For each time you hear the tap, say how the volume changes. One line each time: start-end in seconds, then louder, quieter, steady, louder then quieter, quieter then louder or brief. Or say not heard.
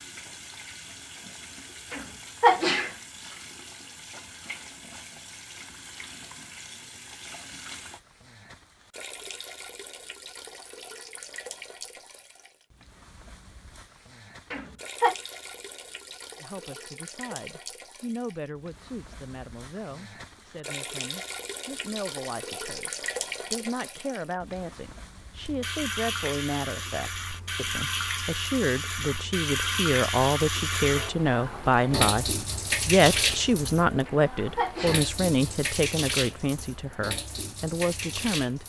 0.0-38.6 louder.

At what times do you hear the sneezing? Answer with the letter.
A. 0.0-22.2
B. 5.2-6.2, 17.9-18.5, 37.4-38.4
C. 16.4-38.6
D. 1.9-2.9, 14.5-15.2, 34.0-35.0
D.